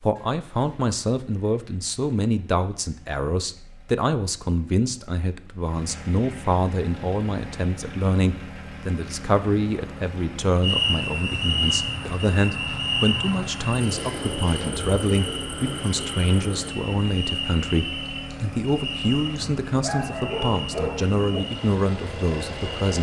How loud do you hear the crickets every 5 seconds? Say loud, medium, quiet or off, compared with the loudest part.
off, off, loud, medium, medium.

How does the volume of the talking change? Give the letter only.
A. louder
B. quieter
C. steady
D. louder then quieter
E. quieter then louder
C.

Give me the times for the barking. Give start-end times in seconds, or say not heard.
19.4-21.4.